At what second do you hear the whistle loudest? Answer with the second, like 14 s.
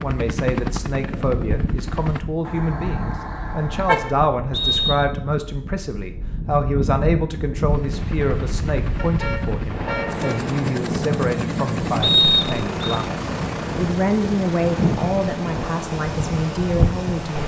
12 s.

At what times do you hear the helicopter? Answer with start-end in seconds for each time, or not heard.
0.0-2.2, 7.7-17.4.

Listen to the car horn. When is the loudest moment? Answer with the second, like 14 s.
4 s.